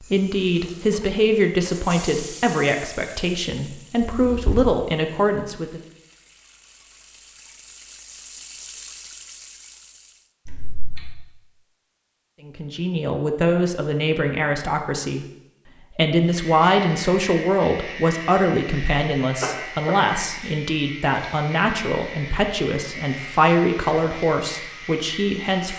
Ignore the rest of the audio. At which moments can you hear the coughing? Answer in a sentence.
You can hear the coughing from 4.0 to 4.6 s, from 10.4 to 11.1 s and from 19.4 to 19.9 s.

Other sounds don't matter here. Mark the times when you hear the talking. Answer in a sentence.
The talking can be heard from 0.0 to 5.8 s and from 12.4 to 25.7 s.